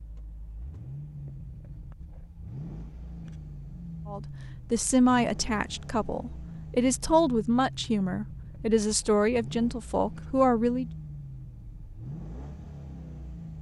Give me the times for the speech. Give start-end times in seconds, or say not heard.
4.0-10.8.